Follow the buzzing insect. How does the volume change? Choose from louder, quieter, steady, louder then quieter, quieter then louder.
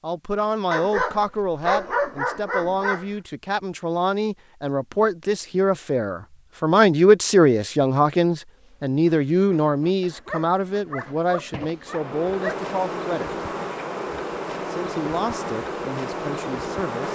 louder.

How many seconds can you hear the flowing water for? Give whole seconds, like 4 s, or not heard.
not heard.